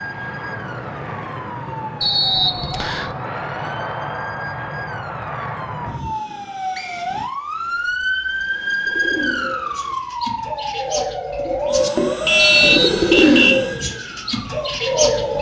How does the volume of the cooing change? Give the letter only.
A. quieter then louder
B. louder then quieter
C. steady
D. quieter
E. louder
B.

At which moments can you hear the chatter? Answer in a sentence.
The chatter can't be heard in this clip.